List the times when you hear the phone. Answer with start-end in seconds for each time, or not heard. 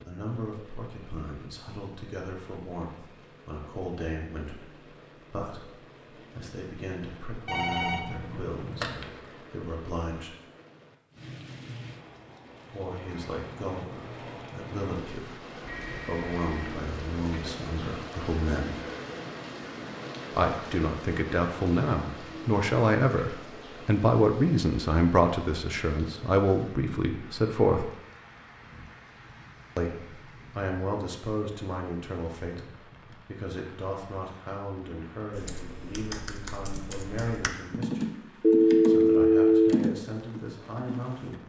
7.5-9.1, 15.6-17.5, 38.4-39.8.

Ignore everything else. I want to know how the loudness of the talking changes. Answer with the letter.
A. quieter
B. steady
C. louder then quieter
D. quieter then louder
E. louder
C.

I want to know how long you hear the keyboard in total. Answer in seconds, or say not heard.
6 s.